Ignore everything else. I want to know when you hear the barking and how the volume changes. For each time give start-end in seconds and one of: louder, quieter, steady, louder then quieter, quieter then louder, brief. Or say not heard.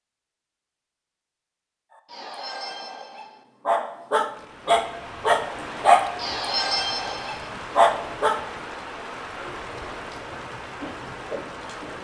2.1-8.4 louder.